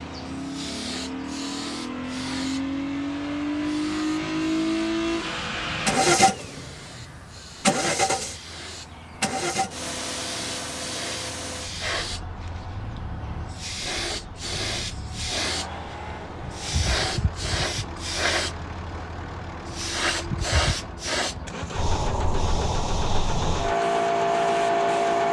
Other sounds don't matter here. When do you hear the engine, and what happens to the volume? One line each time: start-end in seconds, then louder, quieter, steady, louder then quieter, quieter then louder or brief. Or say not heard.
0.0-25.2 quieter.